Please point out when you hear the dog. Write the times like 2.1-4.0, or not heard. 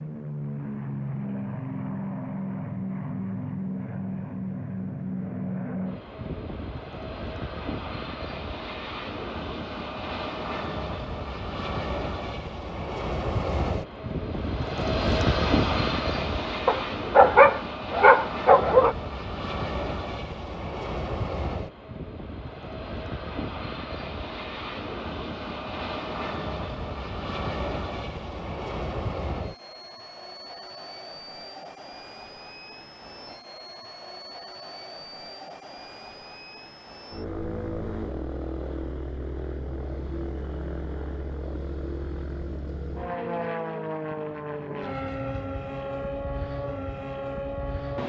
16.6-18.9.